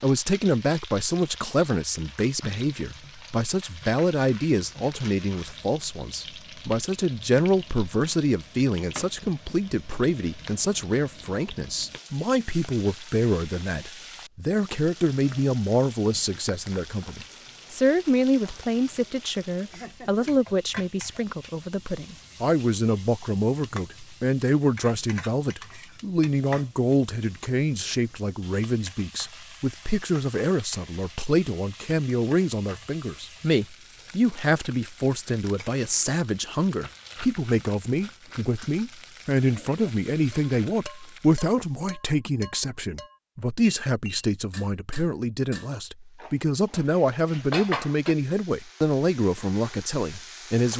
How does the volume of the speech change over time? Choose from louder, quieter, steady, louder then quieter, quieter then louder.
steady.